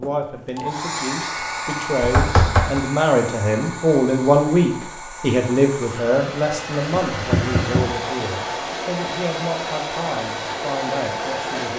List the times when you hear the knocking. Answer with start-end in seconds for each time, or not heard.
2.0-2.8, 7.0-7.9.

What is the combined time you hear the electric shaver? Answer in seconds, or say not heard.
not heard.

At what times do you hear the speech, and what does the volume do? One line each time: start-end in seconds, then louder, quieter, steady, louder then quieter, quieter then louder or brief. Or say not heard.
0.0-11.7 louder then quieter.